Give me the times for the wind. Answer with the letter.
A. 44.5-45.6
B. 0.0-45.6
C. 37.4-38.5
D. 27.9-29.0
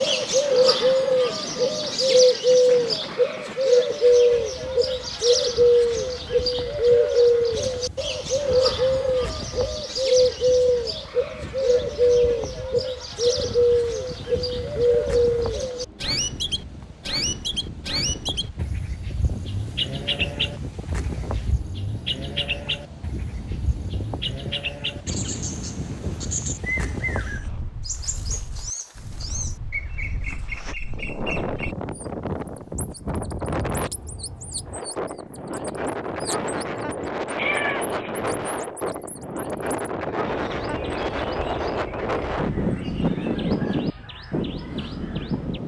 B.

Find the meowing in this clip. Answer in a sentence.
The meowing can be heard from 37.4 to 38.5 s.